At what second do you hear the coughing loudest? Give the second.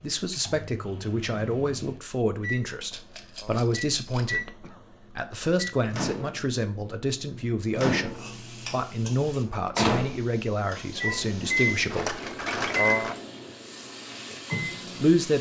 13 s.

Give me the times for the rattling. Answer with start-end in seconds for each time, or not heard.
2.9-4.3, 11.8-13.2.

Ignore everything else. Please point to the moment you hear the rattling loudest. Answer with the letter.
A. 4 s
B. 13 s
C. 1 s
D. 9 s
B.